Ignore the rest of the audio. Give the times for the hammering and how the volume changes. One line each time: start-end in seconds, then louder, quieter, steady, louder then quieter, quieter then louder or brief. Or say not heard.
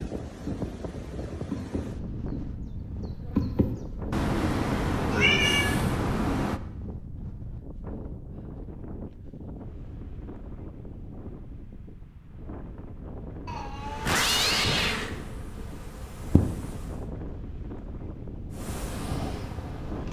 not heard.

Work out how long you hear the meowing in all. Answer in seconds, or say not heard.
4 s.